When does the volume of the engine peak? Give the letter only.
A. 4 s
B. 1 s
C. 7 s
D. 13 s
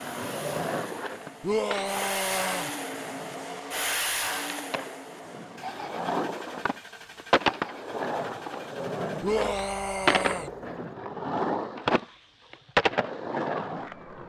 A.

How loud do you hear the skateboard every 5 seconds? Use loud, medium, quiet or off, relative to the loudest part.
medium, loud, loud.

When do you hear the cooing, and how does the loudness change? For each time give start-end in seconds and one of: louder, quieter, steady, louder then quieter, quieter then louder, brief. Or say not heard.
not heard.